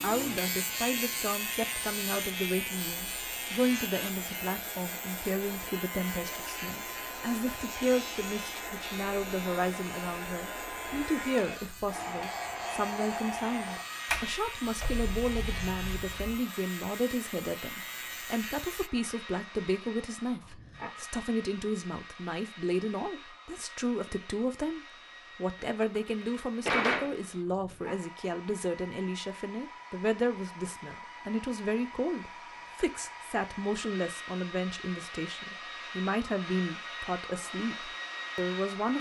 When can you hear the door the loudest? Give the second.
27 s.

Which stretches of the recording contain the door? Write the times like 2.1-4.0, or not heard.
14.1-16.4, 25.9-27.2.